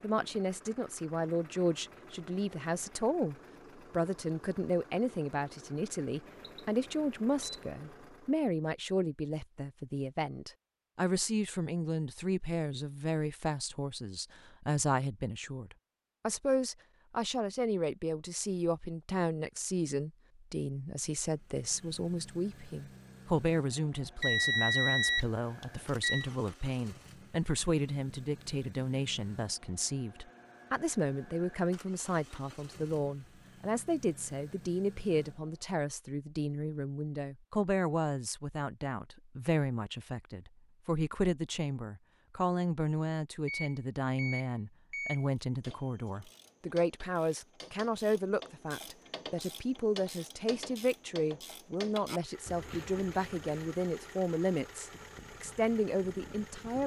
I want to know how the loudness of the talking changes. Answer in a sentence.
The loudness of the talking stays about the same.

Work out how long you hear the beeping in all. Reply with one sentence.
The beeping can be heard for 5 seconds in total.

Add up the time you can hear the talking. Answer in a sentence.
You can hear the talking for 57 seconds altogether.